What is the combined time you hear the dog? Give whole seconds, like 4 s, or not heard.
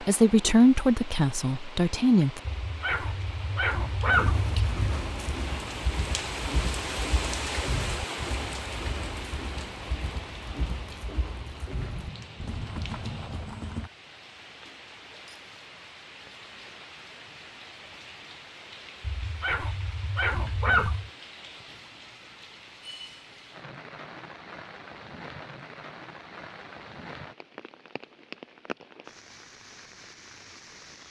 4 s.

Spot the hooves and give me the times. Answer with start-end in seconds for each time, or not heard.
4.1-13.9.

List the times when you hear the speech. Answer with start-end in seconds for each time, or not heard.
0.0-2.4.